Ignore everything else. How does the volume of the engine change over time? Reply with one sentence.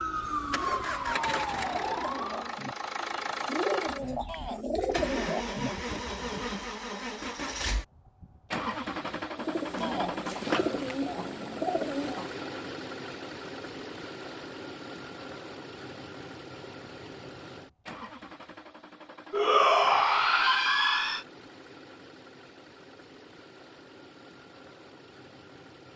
The volume of the engine goes down.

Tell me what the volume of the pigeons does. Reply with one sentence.
The volume of the pigeons goes up.